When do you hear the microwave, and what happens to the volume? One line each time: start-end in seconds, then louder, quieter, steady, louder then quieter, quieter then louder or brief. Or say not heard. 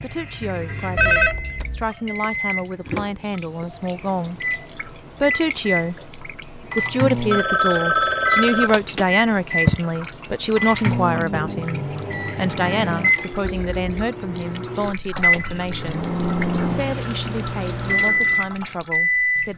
0.0-19.5 louder.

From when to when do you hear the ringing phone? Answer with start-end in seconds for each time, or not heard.
0.9-1.9, 7.3-9.1, 13.4-13.9.